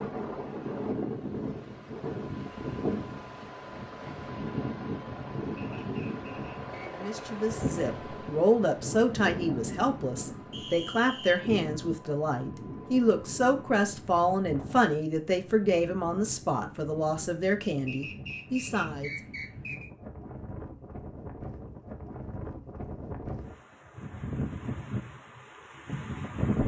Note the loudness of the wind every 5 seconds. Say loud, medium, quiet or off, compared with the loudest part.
loud, loud, medium, medium, medium, loud.